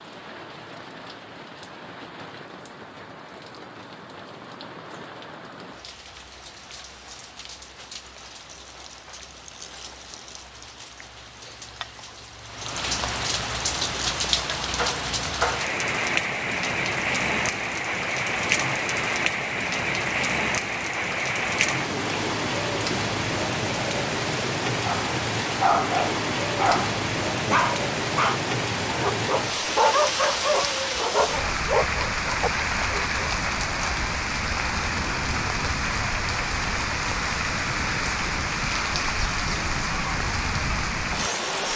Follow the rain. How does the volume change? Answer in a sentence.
The loudness of the rain goes up.